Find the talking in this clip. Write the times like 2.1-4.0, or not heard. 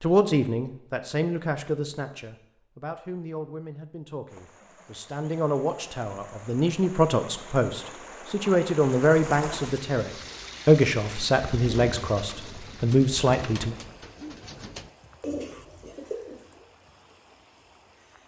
0.0-13.8.